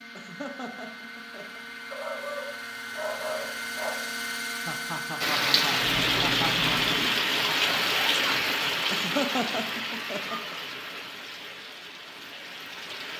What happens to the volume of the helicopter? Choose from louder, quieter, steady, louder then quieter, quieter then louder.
louder.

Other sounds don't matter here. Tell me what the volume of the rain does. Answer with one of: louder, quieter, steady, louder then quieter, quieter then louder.
quieter.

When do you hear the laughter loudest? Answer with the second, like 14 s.
9 s.